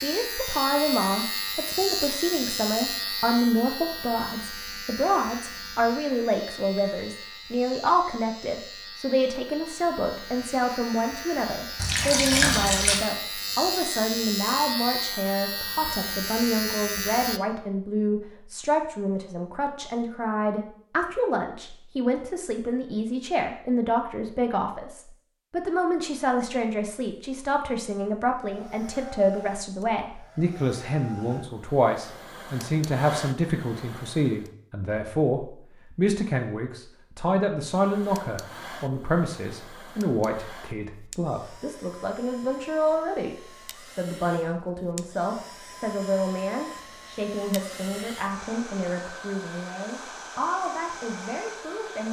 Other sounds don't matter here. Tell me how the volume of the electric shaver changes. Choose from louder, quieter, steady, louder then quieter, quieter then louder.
quieter then louder.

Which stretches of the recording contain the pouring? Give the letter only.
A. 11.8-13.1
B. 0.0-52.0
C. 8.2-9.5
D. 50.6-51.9
A.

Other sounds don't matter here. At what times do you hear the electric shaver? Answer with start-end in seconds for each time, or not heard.
0.0-17.4.